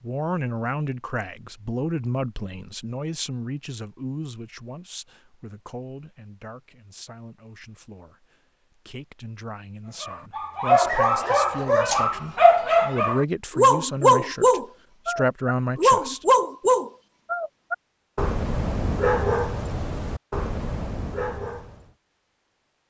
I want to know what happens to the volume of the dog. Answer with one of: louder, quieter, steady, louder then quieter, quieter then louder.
quieter.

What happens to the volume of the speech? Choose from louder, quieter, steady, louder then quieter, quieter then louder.
quieter then louder.